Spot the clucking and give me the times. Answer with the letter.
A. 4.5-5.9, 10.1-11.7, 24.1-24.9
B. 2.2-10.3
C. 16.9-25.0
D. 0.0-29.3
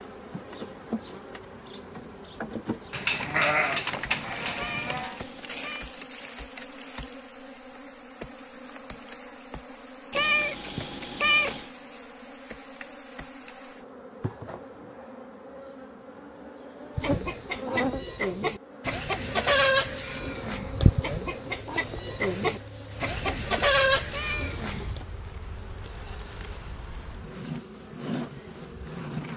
C.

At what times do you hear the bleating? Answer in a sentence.
The bleating can be heard from 2.9 to 5.2 s.